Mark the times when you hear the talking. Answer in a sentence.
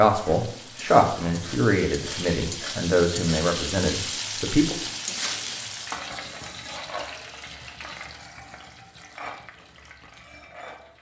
The talking can be heard from 0.0 to 4.8 s.